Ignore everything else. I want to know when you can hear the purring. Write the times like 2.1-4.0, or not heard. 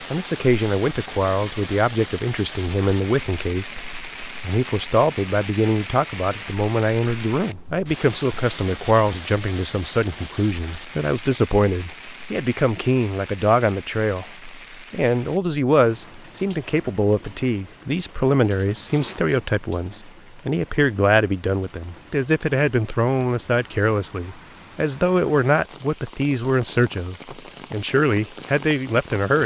not heard.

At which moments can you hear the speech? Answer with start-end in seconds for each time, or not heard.
0.1-29.4.